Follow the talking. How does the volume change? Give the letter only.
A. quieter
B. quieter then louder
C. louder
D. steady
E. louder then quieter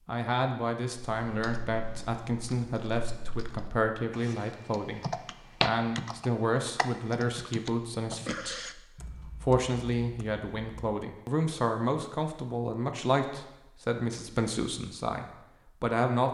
D.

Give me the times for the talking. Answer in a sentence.
You can hear the talking from 0.1 to 16.2 s.